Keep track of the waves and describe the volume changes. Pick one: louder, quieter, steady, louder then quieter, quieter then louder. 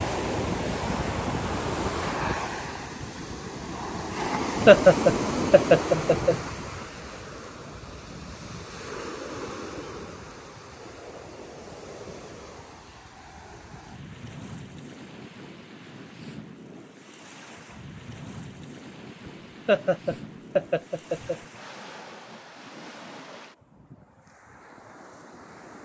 quieter.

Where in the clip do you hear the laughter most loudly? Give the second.
5 s.